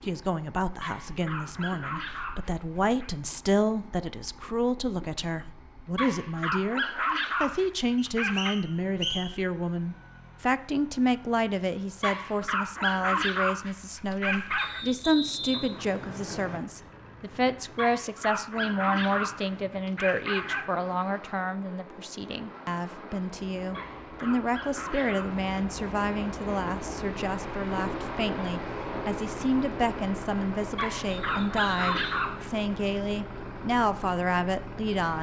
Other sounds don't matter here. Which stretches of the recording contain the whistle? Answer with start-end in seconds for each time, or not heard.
8.0-9.3, 14.6-16.6, 31.1-32.5.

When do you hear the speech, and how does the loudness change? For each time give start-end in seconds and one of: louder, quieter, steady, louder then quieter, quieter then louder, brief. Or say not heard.
0.0-35.1 steady.